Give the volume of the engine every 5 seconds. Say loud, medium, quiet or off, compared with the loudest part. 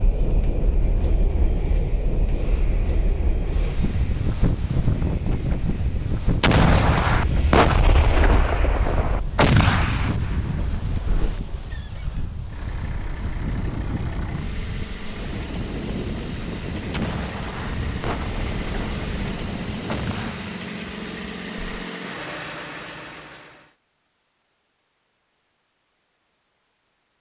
quiet, medium, medium, loud, loud, off.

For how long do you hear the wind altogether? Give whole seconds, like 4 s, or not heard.
20 s.